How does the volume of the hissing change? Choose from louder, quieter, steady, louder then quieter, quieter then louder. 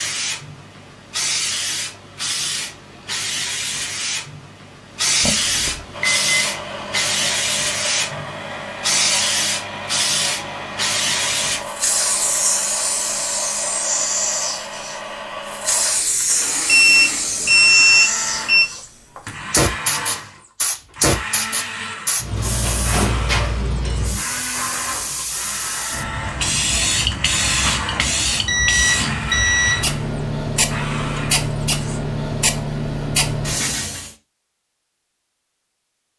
steady.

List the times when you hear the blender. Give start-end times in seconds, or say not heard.
5.9-32.0.